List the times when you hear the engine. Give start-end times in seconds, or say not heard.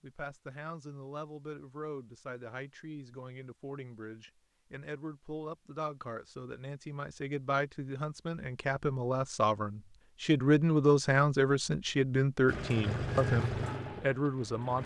12.4-14.8.